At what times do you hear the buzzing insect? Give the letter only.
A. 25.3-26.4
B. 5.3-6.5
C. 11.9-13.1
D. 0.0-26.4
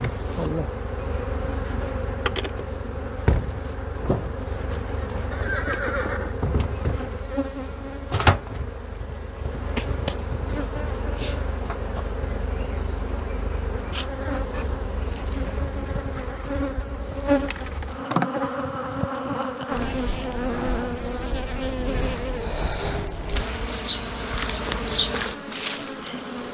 D.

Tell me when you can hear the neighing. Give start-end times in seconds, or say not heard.
5.3-6.5.